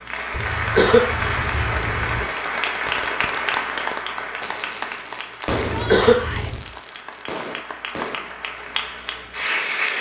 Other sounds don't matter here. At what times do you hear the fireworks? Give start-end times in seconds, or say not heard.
2.2-8.3.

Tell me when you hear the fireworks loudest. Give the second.
6 s.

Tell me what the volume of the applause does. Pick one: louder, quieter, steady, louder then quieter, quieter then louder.
quieter then louder.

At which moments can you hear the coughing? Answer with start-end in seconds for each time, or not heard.
0.3-2.2, 5.5-6.7.